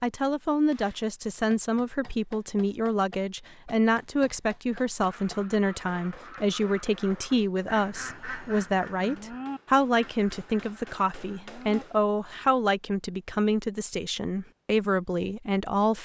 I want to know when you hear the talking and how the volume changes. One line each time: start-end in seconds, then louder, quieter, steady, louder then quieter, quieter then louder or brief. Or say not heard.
0.0-16.0 steady.